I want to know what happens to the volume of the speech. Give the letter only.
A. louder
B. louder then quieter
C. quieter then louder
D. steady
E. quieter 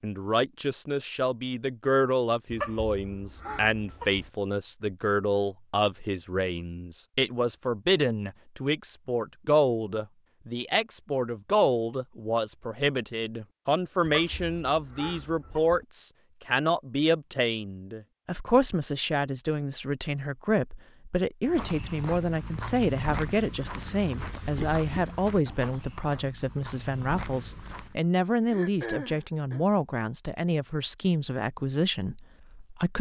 D.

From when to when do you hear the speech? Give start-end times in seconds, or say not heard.
0.0-32.9.